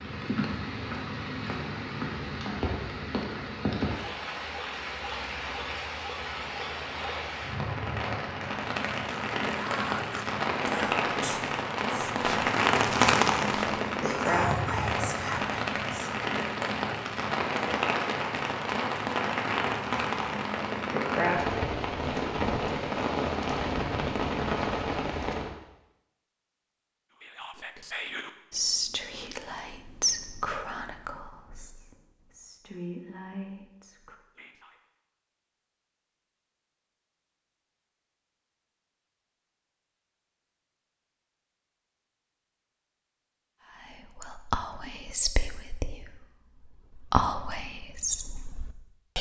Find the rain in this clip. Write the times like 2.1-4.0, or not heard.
0.0-25.6.